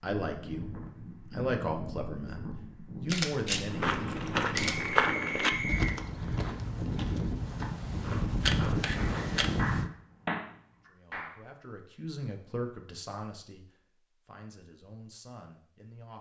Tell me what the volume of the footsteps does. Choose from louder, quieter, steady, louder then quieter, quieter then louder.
quieter.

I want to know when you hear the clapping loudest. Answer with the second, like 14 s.
10 s.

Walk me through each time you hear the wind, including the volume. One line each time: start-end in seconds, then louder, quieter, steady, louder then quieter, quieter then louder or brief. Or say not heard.
0.2-9.9 louder.